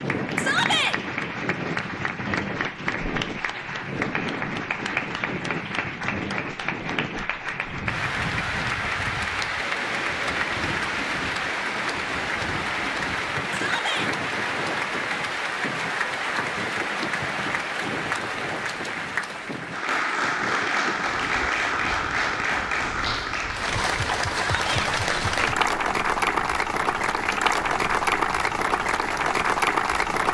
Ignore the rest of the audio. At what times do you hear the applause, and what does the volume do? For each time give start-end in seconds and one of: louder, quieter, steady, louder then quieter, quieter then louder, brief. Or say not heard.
0.0-30.2 louder.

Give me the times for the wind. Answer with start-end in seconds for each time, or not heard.
0.0-30.2.